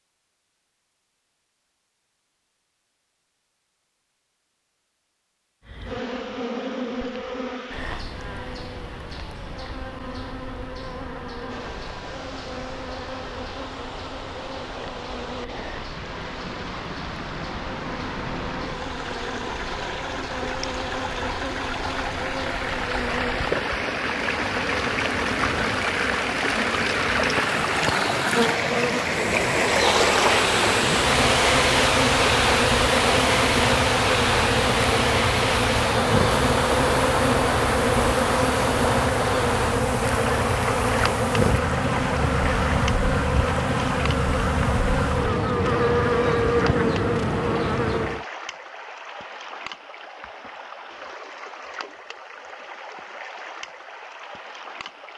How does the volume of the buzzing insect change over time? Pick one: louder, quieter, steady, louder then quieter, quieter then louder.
louder.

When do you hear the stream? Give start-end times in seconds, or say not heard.
11.4-55.1.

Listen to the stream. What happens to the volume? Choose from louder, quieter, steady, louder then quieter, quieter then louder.
louder then quieter.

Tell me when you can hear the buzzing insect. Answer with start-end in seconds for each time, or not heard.
5.7-48.2.